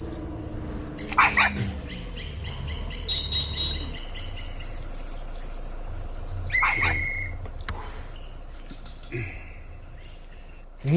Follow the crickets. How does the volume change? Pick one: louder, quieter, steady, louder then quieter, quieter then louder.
steady.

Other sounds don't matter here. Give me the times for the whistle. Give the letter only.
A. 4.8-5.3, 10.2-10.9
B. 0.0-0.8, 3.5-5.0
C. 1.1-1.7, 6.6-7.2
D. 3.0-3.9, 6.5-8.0
D.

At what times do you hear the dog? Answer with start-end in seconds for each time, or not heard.
1.1-1.7, 6.6-7.2.